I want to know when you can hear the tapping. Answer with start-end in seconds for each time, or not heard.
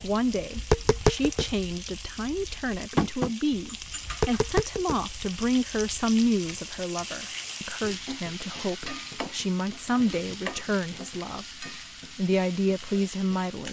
0.0-6.8.